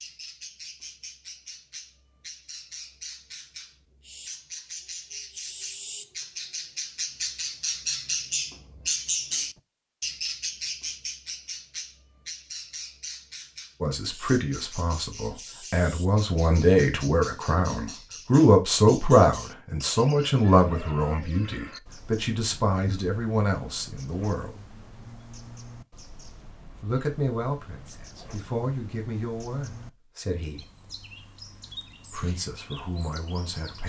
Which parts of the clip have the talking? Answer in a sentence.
The talking can be heard from 13.8 to 24.6 s, from 26.8 to 30.6 s and from 32.1 to 33.8 s.